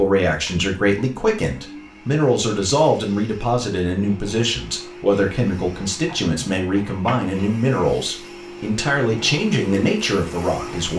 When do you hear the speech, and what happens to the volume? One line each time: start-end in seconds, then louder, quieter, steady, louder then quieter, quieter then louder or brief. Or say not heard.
0.0-10.9 steady.